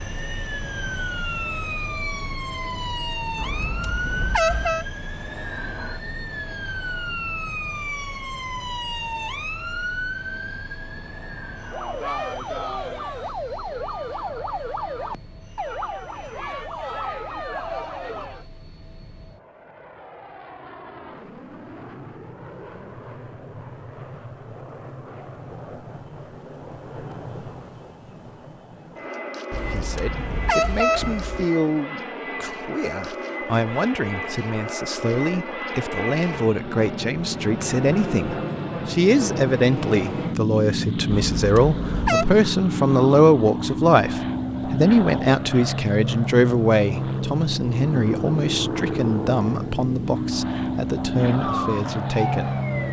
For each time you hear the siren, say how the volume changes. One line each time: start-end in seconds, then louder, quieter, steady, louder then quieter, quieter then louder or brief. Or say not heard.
0.0-18.4 steady
51.4-52.8 brief.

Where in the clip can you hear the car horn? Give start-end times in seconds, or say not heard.
3.4-4.8, 29.5-31.4, 41.1-42.2.